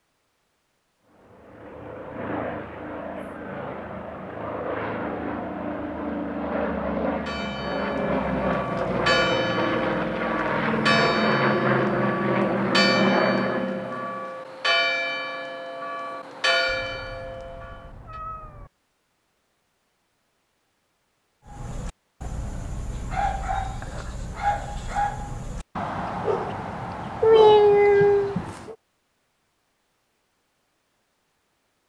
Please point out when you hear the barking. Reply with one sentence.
The barking can be heard from 21.4 to 28.8 s.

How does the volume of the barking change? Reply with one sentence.
The loudness of the barking goes up.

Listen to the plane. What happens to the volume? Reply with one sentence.
The loudness of the plane goes up.